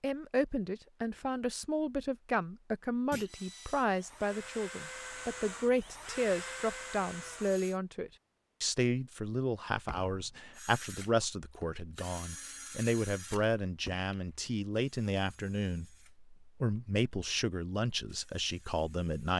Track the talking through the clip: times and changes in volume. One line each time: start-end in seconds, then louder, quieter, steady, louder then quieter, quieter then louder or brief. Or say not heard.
0.0-19.3 steady.